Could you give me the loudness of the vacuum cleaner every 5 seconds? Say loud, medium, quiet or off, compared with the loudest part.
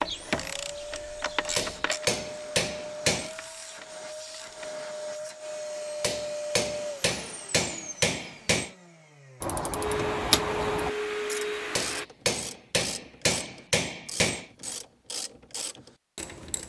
medium, medium, loud, off.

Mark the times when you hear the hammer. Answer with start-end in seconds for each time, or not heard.
1.6-3.3, 6.0-8.7, 11.8-14.4.